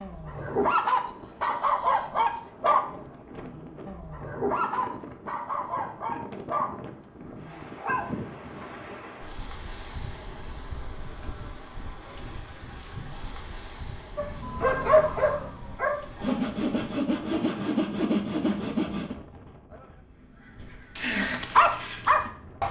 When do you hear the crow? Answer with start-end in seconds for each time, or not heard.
not heard.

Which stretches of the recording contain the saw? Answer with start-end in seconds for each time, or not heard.
16.2-19.1.